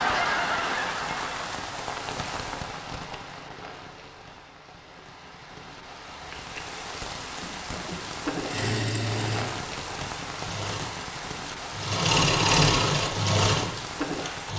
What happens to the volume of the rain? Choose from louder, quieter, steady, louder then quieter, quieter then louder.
quieter then louder.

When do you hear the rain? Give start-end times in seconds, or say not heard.
0.0-14.5.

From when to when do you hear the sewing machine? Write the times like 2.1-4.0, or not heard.
7.9-14.5.